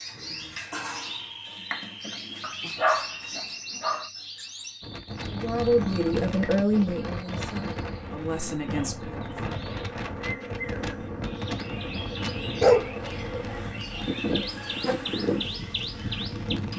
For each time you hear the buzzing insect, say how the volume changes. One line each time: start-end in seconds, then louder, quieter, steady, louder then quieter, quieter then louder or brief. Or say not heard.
7.7-16.7 louder.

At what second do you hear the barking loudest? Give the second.
13 s.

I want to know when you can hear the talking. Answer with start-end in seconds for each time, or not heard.
5.2-9.2.